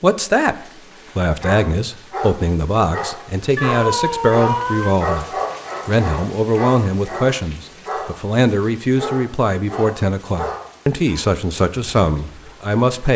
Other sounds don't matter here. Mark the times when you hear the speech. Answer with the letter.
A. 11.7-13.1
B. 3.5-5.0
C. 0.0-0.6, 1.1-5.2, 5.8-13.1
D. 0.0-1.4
C.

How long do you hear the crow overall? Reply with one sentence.
The crow can't be heard in this clip.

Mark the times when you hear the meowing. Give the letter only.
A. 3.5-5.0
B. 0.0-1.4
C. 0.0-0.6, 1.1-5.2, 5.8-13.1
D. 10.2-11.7
A.